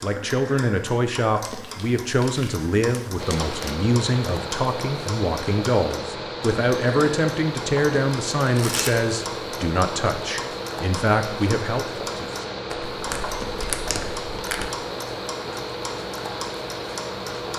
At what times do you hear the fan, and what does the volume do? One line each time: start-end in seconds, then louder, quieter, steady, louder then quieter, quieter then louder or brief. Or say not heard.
3.1-17.5 steady.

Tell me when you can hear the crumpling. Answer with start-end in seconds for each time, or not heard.
1.4-3.8, 8.4-8.9, 12.7-14.7.